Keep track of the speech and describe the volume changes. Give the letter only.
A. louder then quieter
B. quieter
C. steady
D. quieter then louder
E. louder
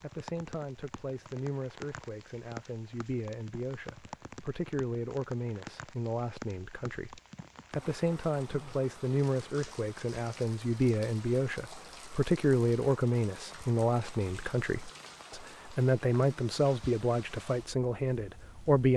E.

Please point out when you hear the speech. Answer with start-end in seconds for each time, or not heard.
0.0-18.9.